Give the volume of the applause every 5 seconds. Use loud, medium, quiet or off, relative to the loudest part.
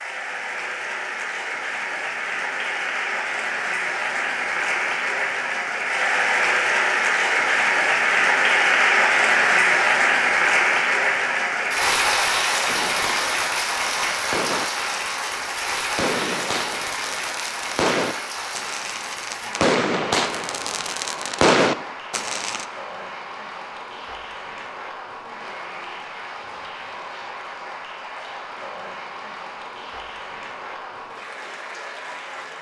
medium, loud, loud, medium, quiet, quiet, quiet.